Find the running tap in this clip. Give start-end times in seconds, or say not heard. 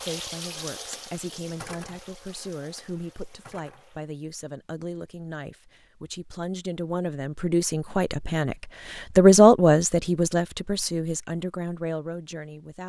0.0-4.2.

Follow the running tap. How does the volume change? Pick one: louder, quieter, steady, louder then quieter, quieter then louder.
quieter.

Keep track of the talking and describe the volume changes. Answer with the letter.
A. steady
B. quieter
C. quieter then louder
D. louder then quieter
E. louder
D.